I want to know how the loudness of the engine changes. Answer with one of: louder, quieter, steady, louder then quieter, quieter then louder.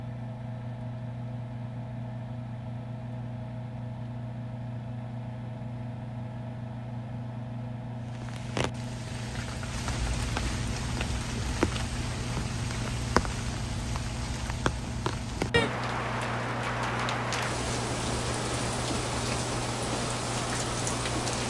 steady.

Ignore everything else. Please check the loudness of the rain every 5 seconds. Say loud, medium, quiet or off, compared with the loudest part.
off, medium, loud, loud, loud.